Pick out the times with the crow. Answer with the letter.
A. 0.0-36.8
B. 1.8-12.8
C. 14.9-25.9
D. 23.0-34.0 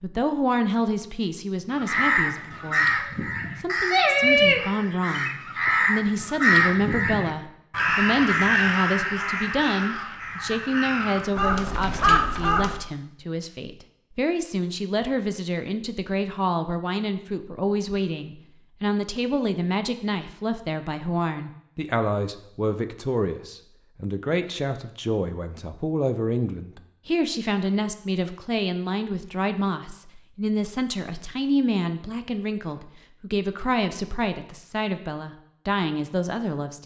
B.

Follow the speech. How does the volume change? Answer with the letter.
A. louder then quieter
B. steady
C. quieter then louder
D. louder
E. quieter
B.